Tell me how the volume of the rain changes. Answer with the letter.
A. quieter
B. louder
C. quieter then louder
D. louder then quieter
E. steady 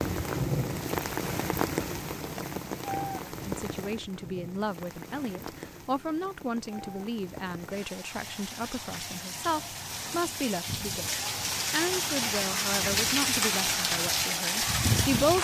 C.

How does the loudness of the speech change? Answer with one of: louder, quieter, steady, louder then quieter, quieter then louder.
steady.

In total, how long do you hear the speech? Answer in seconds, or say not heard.
12 s.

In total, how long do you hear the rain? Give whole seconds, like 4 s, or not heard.
15 s.